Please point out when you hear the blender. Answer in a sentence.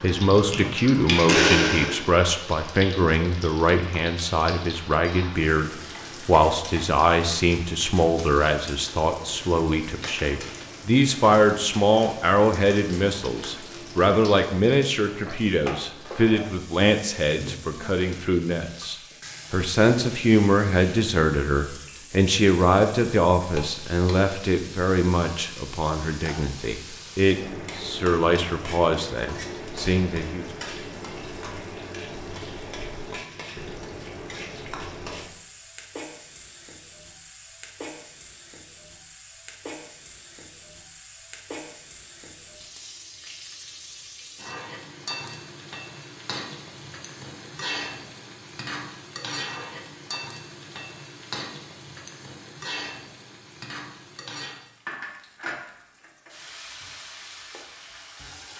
You can hear the blender from 0.0 to 2.0 s.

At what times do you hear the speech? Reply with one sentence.
You can hear the speech from 0.0 to 30.4 s.